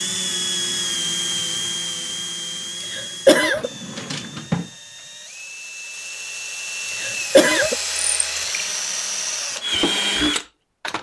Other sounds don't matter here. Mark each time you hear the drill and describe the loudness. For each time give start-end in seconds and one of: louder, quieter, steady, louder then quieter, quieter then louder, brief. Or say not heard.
0.0-10.9 quieter then louder.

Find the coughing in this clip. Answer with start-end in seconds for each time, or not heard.
2.9-3.7, 7.0-7.8.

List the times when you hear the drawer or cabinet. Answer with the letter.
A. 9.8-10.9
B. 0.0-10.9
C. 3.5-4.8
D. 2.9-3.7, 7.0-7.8
C.